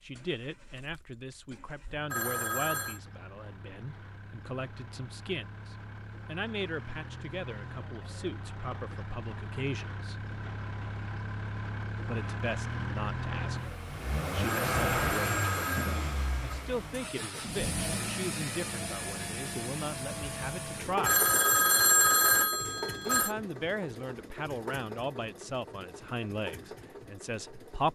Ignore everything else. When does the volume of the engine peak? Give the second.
15 s.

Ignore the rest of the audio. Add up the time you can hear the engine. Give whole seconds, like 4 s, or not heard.
28 s.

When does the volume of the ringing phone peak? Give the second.
22 s.